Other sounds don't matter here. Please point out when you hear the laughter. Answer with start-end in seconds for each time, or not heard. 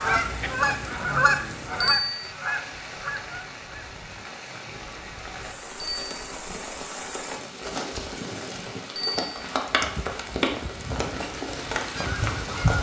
not heard.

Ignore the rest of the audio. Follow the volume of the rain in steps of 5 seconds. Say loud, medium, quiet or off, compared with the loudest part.
medium, loud, loud.